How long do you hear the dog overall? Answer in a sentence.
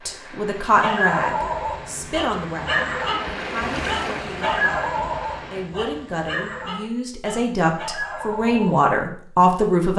You can hear the dog for 8 seconds altogether.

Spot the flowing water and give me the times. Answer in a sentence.
The flowing water can be heard from 0.0 to 5.7 s.